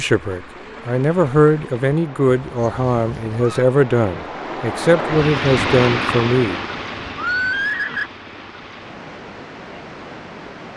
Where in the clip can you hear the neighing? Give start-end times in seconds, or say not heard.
2.2-3.6, 7.2-8.1.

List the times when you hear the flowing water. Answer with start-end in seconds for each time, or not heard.
0.0-10.7.